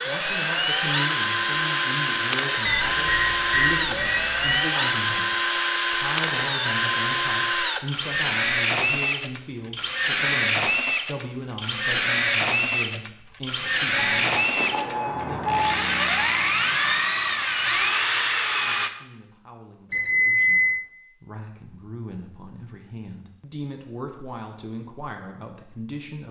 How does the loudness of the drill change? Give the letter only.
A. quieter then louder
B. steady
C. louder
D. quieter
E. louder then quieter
B.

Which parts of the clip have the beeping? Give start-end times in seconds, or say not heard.
2.6-4.5, 13.9-15.6, 19.9-20.9.